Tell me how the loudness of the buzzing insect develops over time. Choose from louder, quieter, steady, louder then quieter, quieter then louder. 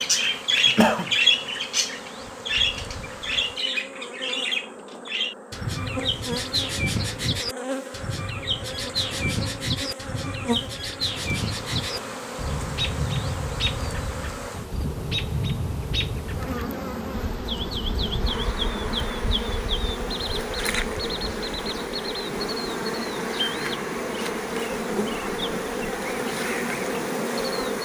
louder.